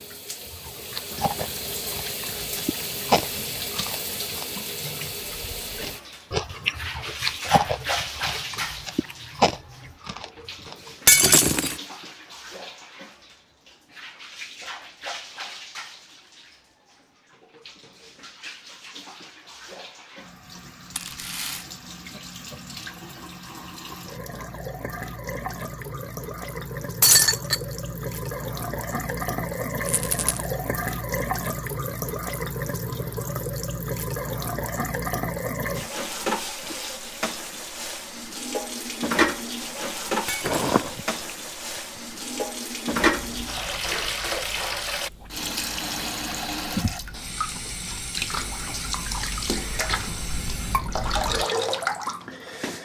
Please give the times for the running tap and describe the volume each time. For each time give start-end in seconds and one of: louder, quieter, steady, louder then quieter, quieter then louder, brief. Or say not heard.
0.0-52.7 quieter then louder.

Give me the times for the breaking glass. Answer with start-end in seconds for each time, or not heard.
11.1-11.8, 27.0-27.6, 40.2-41.0.